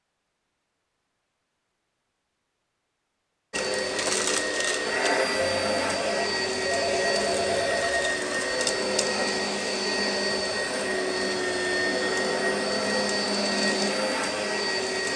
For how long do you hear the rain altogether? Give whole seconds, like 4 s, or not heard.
not heard.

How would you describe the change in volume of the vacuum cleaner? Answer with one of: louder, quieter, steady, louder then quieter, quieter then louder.
steady.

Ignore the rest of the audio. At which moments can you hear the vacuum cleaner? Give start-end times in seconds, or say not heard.
3.5-15.1.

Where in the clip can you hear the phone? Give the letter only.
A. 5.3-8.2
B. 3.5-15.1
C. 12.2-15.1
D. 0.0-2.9
A.